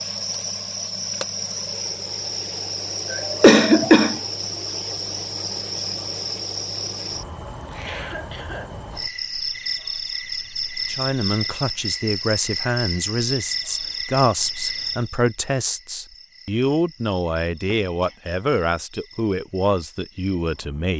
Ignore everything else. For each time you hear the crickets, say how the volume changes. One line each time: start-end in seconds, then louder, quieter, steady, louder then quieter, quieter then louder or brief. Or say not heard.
0.0-20.9 quieter.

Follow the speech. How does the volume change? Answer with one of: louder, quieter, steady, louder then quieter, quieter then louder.
steady.